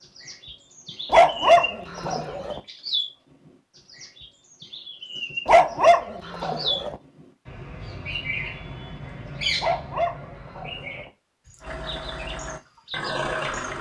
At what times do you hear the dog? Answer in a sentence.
You can hear the dog from 1.1 to 2.6 s, from 5.5 to 7.0 s and from 9.6 to 11.1 s.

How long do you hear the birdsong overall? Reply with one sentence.
The birdsong can be heard for 14 seconds in total.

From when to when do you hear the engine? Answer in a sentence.
The engine can be heard from 11.6 to 13.7 s.